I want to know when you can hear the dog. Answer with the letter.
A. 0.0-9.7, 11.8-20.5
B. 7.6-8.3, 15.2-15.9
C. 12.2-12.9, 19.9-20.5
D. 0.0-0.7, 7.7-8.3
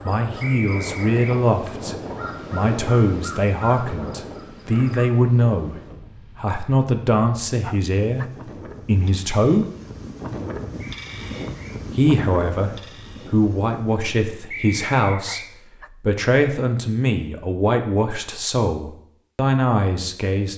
B.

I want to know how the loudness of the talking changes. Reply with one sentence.
The volume of the talking stays about the same.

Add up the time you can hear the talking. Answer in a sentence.
You can hear the talking for 18 seconds altogether.